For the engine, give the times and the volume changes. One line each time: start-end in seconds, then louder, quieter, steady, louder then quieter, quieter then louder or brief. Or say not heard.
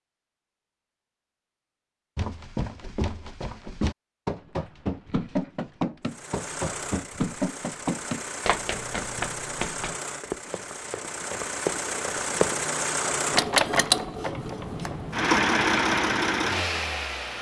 6.0-17.3 louder.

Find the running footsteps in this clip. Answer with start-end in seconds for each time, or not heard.
2.1-12.6.